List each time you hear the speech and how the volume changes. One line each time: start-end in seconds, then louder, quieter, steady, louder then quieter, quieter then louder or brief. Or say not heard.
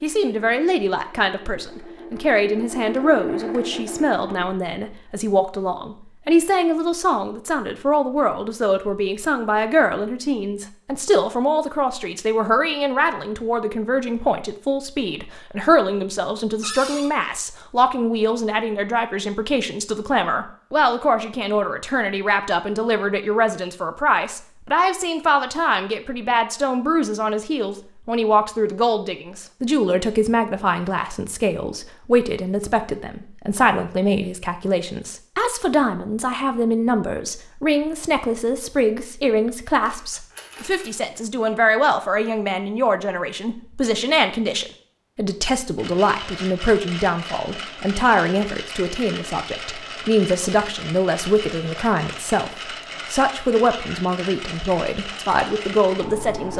0.0-56.5 steady.